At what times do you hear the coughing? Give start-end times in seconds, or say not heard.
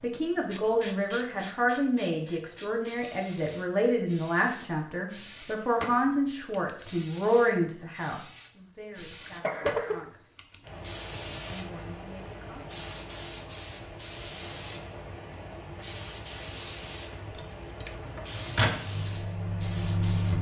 9.1-10.1.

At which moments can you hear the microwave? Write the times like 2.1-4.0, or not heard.
17.4-20.3.